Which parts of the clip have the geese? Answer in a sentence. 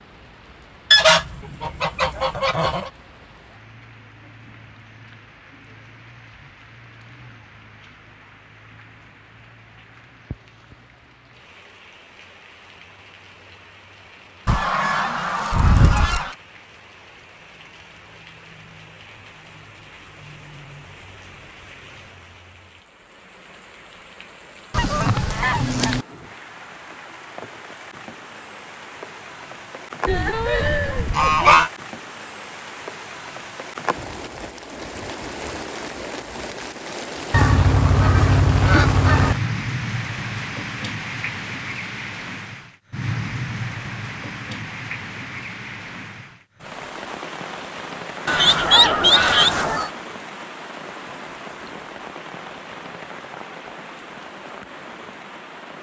The geese can be heard from 0.9 to 2.9 s, from 14.4 to 16.4 s, from 24.7 to 26.1 s, from 30.1 to 31.7 s, from 37.3 to 39.4 s and from 48.2 to 49.9 s.